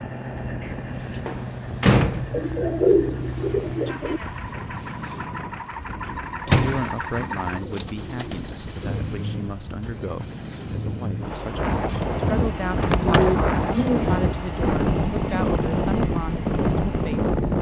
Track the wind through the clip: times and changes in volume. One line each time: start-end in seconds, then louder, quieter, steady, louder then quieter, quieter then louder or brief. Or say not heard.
0.2-17.5 louder.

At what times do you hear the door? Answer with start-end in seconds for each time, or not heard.
0.6-2.5, 6.5-7.0, 12.8-13.4.